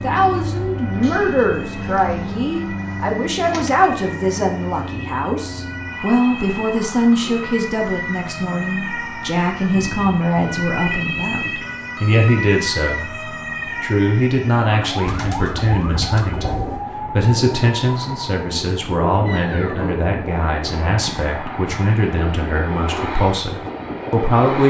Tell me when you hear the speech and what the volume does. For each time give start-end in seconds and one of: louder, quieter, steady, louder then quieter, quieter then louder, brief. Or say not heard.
0.0-13.2 steady
13.8-24.6 steady.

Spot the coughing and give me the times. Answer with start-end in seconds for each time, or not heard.
not heard.